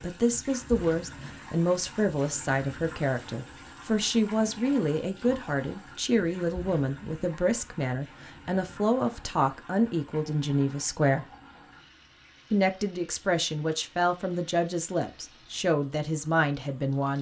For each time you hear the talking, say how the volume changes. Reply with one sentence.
The talking can be heard from 0.0 to 11.2 s, at a steady volume; and from 12.5 to 17.1 s, at a steady volume.